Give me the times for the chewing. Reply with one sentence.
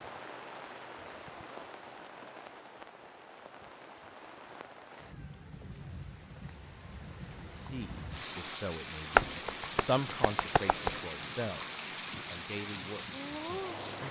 You can't hear the chewing here.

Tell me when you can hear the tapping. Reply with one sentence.
You can hear the tapping from 9.2 to 10.9 s.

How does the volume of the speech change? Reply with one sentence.
The loudness of the speech goes up, then down.